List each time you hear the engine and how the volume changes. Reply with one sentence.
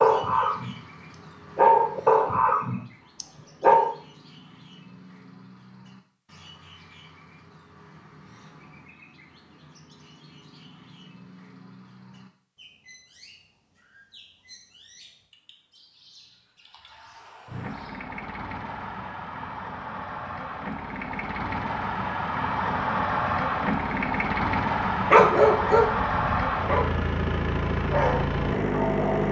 You can hear the engine from 17.4 to 29.2 s, getting louder.